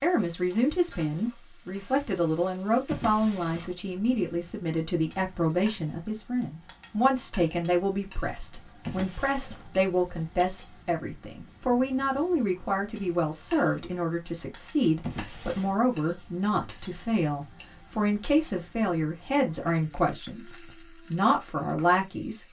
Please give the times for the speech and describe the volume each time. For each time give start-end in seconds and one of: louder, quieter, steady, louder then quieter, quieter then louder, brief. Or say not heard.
0.0-22.4 steady.